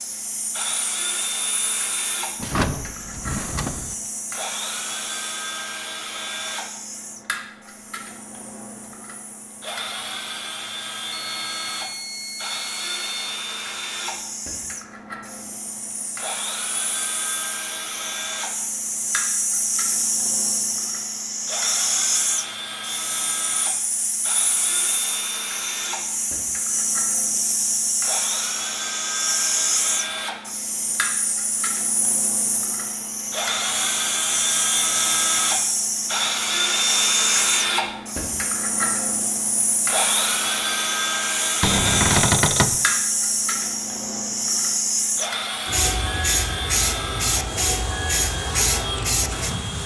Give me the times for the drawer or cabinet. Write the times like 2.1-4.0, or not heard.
2.4-4.0, 41.6-42.8.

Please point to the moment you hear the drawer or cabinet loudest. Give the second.
42 s.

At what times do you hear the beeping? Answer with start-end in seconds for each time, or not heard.
11.1-13.3.